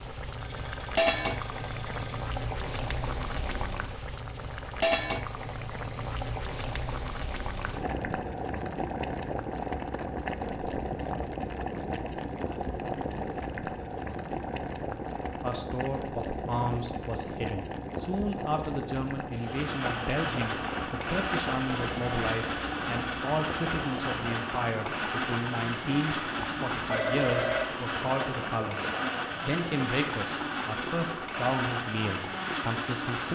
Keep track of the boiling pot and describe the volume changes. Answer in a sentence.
The volume of the boiling pot goes down.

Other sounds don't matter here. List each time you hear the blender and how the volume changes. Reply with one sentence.
The blender can be heard from 19.3 to 33.2 s, at a steady volume.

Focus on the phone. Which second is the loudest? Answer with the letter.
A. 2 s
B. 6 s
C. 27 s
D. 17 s
C.